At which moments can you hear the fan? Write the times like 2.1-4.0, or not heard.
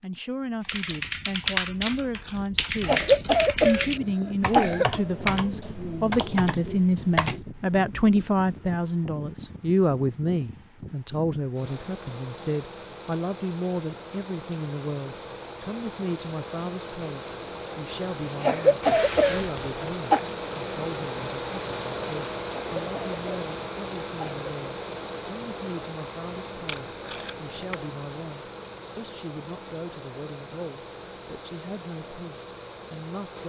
0.0-33.4.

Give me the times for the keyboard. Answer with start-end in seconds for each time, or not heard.
0.7-7.4.